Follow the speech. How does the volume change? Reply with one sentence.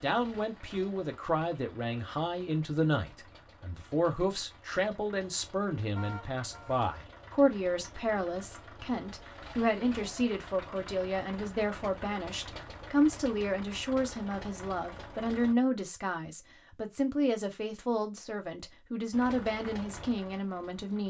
The loudness of the speech stays about the same.